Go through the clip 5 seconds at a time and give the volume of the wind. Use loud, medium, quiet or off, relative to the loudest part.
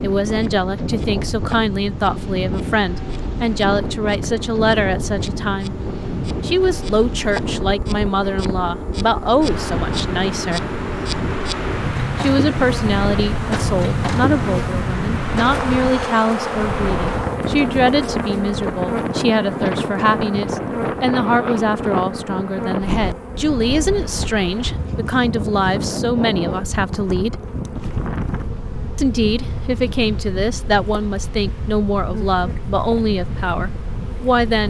loud, loud, loud, loud, loud, loud, medium.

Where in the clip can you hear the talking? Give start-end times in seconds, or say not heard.
0.0-5.8, 6.4-10.7, 12.2-27.4, 28.9-34.6.